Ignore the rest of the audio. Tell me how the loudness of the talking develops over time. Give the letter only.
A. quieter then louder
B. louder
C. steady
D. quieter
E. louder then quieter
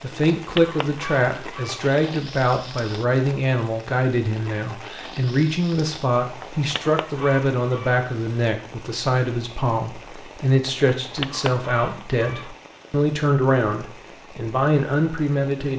C.